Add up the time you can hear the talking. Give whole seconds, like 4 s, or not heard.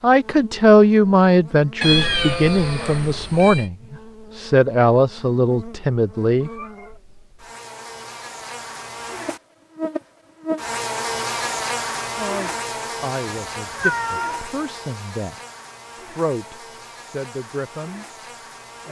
12 s.